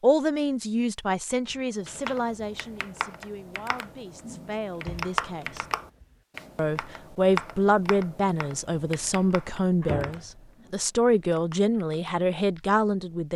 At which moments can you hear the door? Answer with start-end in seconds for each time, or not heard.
1.5-2.1, 4.8-6.2, 9.8-10.7.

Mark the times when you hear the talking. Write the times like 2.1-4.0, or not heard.
0.0-5.7, 6.5-13.3.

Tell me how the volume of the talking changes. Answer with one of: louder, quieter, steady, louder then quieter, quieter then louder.
quieter then louder.